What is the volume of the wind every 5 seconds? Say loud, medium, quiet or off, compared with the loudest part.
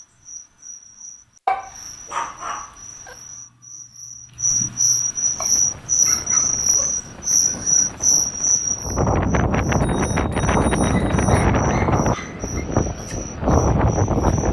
off, medium, loud.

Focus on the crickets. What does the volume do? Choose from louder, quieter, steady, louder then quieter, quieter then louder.
louder then quieter.